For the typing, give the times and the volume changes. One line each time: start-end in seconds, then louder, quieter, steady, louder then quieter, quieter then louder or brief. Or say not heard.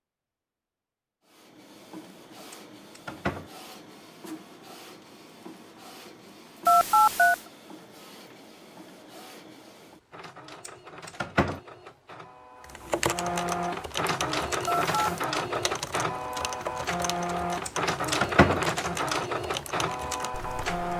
12.9-20.9 steady.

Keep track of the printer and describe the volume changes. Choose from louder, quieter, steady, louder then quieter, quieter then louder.
louder.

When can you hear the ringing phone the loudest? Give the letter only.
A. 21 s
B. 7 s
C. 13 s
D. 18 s
B.